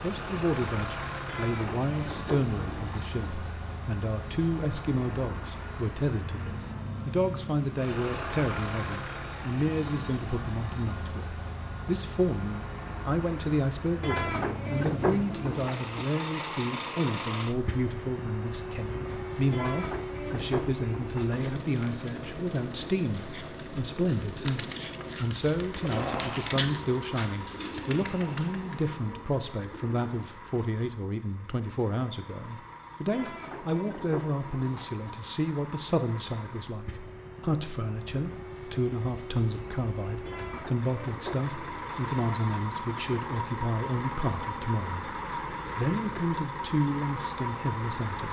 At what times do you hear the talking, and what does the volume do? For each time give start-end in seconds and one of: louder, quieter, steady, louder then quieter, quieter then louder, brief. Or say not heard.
0.0-45.0 steady
45.8-48.2 brief.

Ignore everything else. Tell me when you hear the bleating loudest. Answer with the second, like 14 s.
15 s.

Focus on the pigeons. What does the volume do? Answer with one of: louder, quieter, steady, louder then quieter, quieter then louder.
louder then quieter.